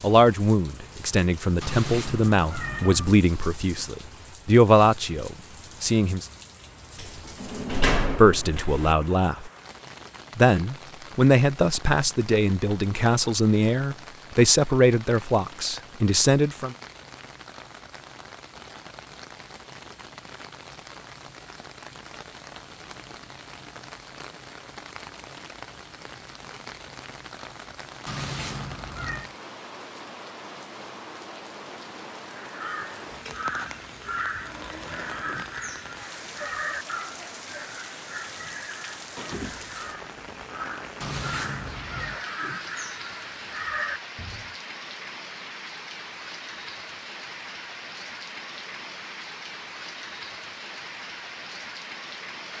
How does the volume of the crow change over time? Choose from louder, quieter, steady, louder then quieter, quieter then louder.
quieter then louder.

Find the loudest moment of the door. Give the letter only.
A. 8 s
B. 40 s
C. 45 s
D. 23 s
A.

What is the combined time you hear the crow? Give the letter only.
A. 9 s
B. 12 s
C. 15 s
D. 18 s
B.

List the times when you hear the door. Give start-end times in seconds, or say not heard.
7.0-8.9, 39.1-39.8.